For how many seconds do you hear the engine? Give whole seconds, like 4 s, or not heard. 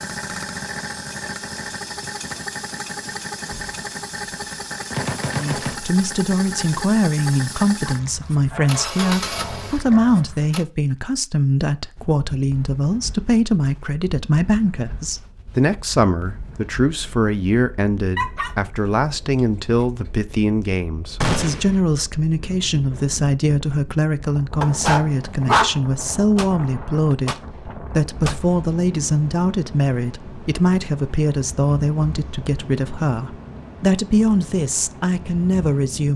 11 s.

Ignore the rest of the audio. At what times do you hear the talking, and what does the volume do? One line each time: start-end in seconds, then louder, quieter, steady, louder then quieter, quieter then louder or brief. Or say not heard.
5.3-36.1 steady.